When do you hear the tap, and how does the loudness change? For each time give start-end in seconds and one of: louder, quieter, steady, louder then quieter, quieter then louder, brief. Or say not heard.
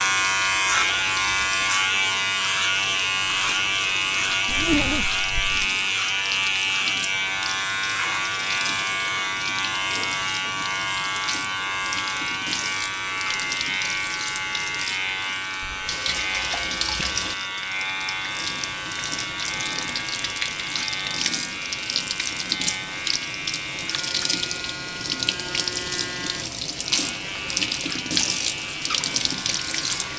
0.0-30.1 louder.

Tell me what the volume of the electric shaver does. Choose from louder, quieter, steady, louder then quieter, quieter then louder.
quieter.